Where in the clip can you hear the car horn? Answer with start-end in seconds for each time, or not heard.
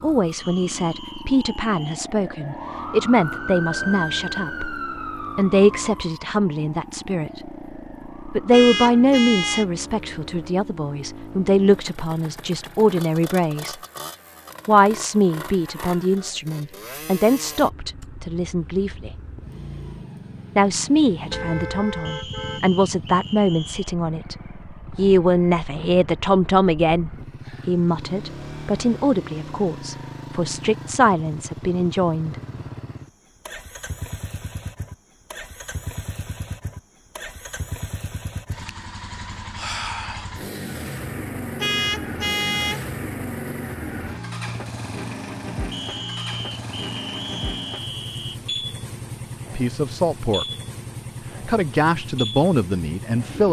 8.5-9.7, 21.3-22.6, 41.5-42.9.